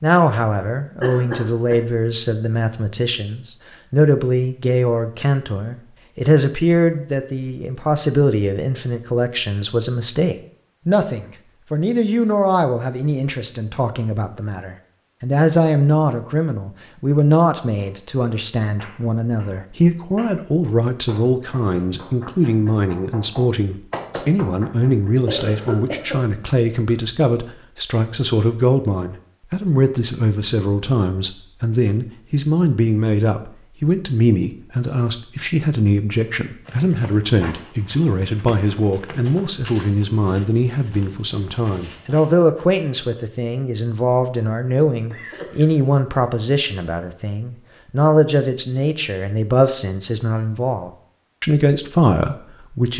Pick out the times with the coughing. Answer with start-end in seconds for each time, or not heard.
1.0-1.8, 25.2-26.2, 45.1-45.9.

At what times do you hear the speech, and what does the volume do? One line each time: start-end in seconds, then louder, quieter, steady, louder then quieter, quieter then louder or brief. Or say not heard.
0.0-52.9 steady.